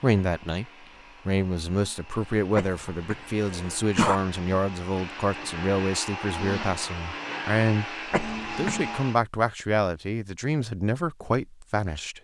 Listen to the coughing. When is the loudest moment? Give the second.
4 s.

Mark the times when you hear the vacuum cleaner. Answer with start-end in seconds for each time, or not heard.
0.0-9.2.